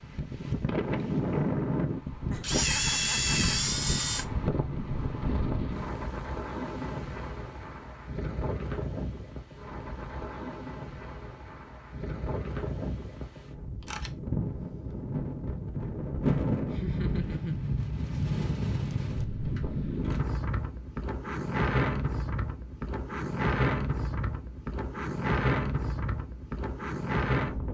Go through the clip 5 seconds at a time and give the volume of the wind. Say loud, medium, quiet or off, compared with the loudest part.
loud, medium, medium, loud, loud, loud.